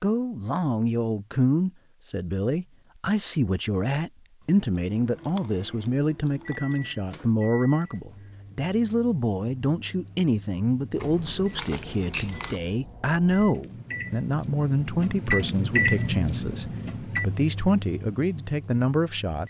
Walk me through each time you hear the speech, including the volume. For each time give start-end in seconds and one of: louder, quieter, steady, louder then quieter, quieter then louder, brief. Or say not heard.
0.0-19.4 steady.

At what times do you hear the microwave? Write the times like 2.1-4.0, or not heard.
5.0-19.4.